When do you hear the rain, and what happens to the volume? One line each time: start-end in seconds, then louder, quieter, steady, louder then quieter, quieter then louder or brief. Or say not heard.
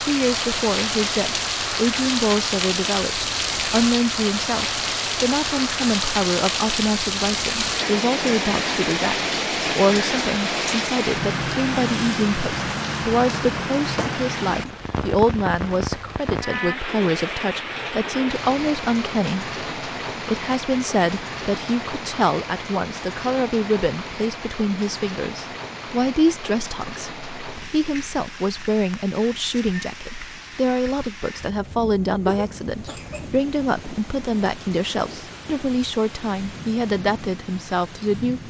0.0-38.4 quieter.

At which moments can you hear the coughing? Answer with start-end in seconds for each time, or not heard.
32.2-33.2.